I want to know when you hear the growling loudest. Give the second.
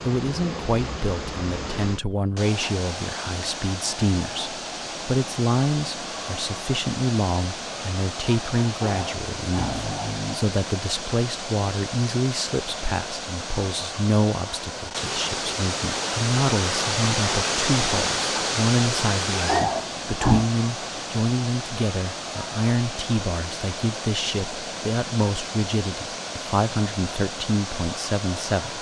20 s.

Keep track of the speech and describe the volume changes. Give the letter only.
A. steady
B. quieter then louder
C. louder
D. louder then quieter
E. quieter
A.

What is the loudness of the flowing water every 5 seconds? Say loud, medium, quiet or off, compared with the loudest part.
medium, medium, medium, loud, medium, medium.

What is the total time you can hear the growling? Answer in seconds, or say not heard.
3 s.